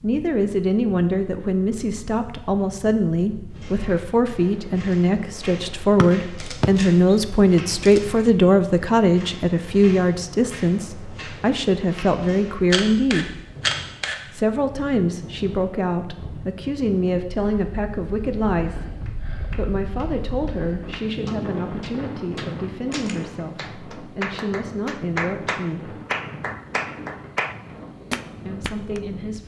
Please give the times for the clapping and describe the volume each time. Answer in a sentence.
The clapping can be heard from 19.1 to 29.0 s, getting louder.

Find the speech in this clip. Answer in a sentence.
You can hear the speech from 0.0 to 13.4 s, from 14.3 to 25.9 s and from 28.4 to 29.4 s.